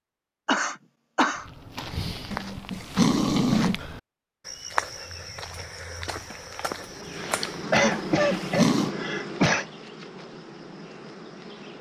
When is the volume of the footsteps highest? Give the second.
5 s.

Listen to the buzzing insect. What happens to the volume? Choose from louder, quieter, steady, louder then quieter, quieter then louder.
quieter.